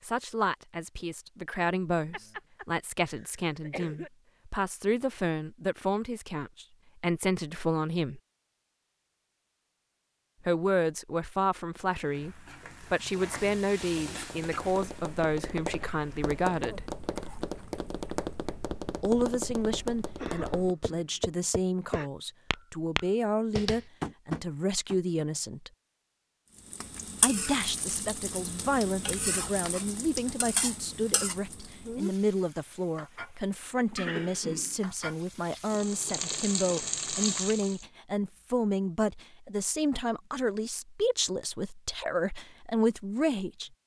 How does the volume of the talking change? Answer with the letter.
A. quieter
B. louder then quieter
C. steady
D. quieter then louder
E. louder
C.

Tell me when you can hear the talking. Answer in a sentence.
You can hear the talking from 0.0 to 8.2 s, from 10.4 to 16.9 s, from 19.0 to 25.7 s and from 27.2 to 43.7 s.